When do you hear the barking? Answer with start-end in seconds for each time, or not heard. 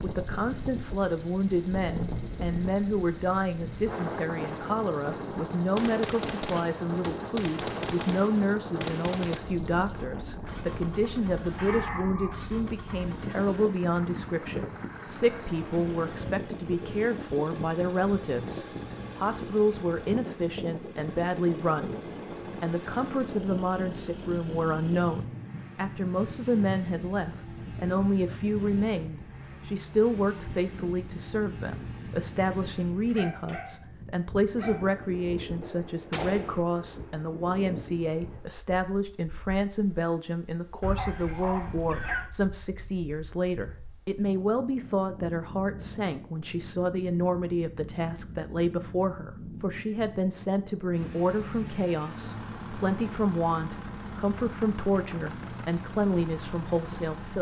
11.6-13.2, 32.9-35.0, 40.8-42.3.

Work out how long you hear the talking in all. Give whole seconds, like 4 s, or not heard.
57 s.